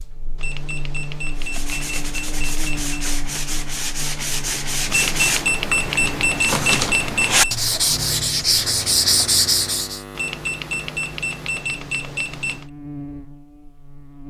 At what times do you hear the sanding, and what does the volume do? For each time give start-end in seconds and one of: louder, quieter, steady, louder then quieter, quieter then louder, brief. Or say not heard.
1.4-10.0 louder.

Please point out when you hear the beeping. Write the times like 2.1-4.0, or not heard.
0.3-3.0, 4.8-7.5, 10.2-12.7.